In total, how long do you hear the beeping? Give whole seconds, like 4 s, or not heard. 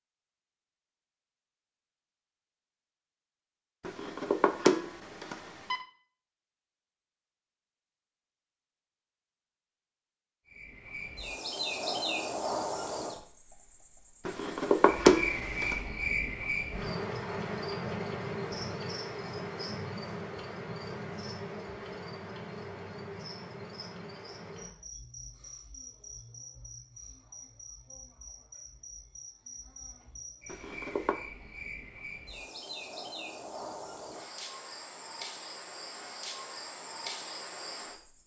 4 s.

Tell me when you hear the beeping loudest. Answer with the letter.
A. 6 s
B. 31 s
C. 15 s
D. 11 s
C.